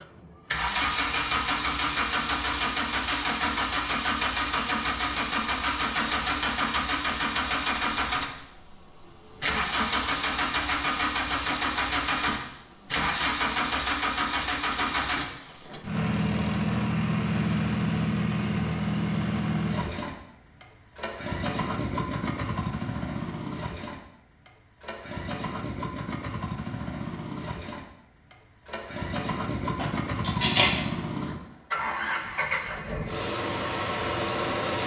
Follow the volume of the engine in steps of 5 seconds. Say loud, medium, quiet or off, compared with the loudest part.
loud, loud, loud, loud, medium, medium, loud.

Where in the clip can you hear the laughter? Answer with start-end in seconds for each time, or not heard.
29.8-30.9.